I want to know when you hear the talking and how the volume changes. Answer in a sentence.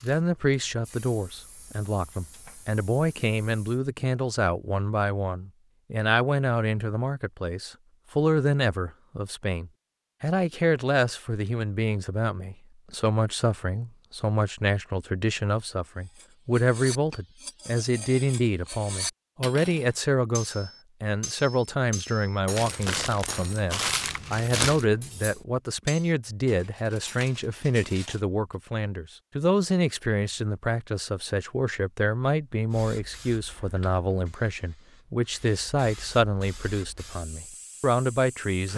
You can hear the talking from 0.0 to 38.7 s, at a steady volume.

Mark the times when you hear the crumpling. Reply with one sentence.
You can hear the crumpling from 22.6 to 24.9 s.